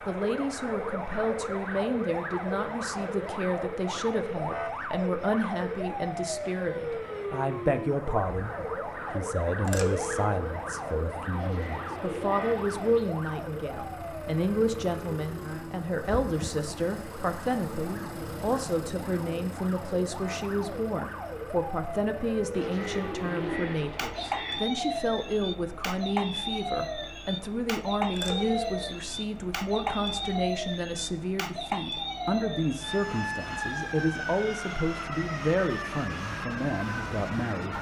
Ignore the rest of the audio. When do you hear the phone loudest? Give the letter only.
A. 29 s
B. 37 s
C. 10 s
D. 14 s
C.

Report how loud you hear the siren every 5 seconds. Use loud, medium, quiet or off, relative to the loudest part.
loud, loud, loud, medium, loud, loud, loud, loud.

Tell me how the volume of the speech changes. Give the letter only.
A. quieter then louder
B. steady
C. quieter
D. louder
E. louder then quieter
B.